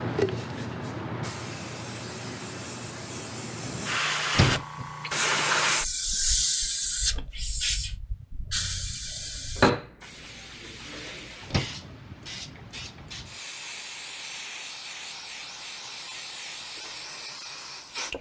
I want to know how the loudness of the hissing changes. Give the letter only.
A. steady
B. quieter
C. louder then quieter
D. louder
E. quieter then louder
C.